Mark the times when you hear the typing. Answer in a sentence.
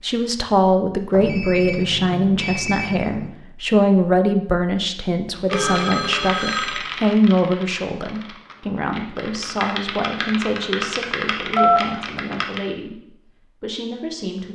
You can hear the typing from 5.3 to 12.7 s.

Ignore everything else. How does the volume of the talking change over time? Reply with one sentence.
The loudness of the talking goes down.